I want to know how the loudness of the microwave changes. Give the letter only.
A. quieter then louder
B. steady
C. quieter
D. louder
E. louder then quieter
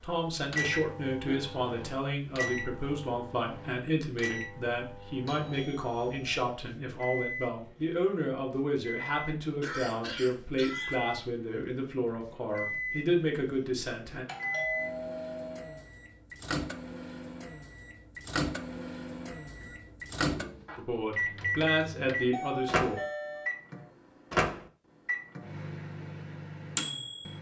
D.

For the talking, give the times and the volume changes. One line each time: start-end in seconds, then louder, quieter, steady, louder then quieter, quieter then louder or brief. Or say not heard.
0.0-14.2 steady
20.8-22.9 brief.